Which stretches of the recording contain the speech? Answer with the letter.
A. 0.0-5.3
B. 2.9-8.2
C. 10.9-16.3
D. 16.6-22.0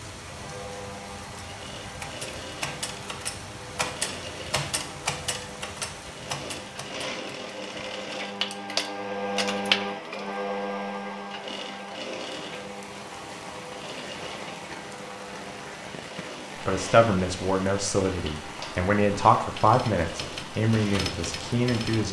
D.